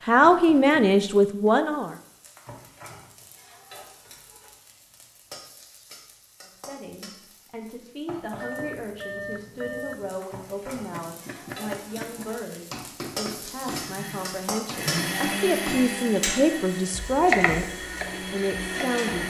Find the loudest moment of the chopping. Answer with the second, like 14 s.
17 s.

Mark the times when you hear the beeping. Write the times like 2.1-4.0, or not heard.
8.3-10.2.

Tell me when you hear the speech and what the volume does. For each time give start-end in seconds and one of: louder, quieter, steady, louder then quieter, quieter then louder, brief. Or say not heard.
0.1-1.9 brief
6.5-17.6 louder
18.3-19.2 brief.